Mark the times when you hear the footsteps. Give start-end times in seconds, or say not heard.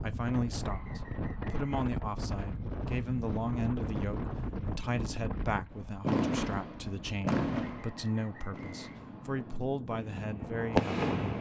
not heard.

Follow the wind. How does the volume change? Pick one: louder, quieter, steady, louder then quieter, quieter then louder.
quieter then louder.